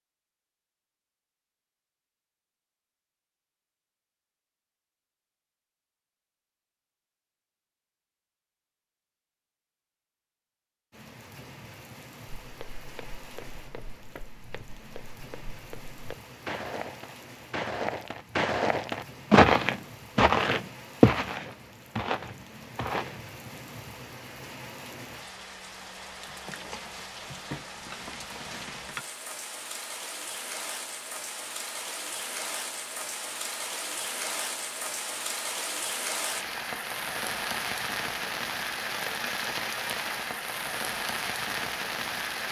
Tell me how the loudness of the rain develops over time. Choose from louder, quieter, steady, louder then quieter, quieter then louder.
louder.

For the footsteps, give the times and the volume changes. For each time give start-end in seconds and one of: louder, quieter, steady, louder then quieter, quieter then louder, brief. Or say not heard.
12.4-23.6 louder then quieter.